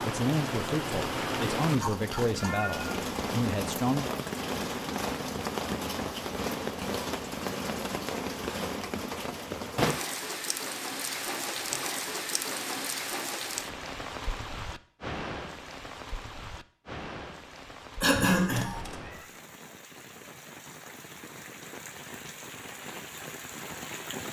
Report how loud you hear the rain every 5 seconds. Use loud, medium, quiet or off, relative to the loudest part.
loud, loud, loud, medium, medium.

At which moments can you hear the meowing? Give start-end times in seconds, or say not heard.
1.7-2.9, 18.4-19.3.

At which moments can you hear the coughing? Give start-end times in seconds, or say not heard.
18.0-18.7.